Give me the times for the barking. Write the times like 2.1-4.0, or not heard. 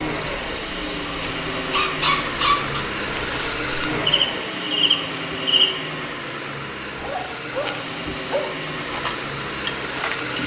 1.1-2.9, 7.0-8.6.